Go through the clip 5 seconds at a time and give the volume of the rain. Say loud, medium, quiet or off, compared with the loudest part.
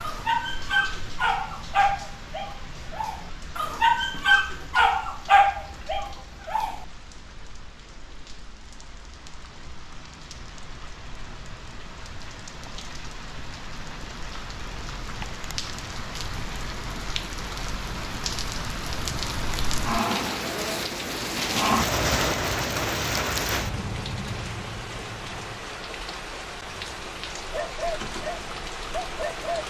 quiet, quiet, quiet, medium, loud, medium.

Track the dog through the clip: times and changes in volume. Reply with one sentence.
You can hear the dog from 0.0 to 6.8 s, getting louder; and briefly from 27.5 to 29.6 s.